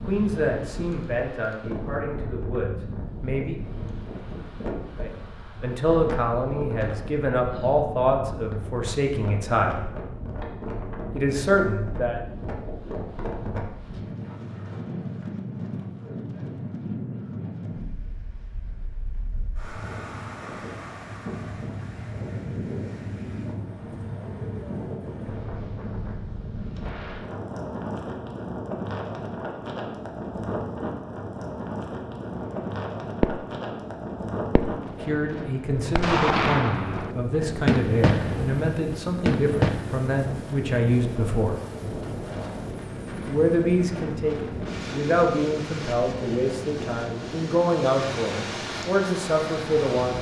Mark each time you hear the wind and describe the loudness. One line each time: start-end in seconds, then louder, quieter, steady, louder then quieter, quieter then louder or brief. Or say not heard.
0.0-50.1 steady.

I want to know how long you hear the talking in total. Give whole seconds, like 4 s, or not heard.
23 s.